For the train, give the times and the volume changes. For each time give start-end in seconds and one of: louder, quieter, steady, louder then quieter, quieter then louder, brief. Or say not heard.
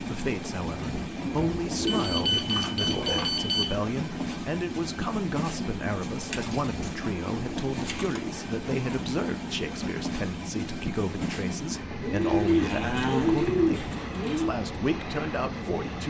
0.0-16.0 steady.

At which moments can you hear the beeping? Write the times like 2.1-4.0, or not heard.
1.9-3.8.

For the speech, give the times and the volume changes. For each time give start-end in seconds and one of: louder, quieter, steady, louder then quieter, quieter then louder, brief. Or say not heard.
0.0-16.0 steady.